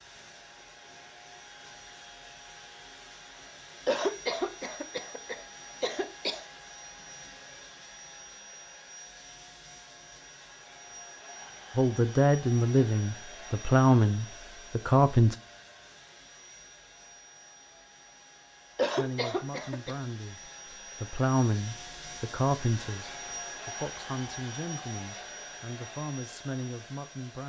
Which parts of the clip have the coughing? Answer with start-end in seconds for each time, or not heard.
3.9-6.5, 18.8-19.9.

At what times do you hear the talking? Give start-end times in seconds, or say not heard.
11.8-15.3, 18.9-27.4.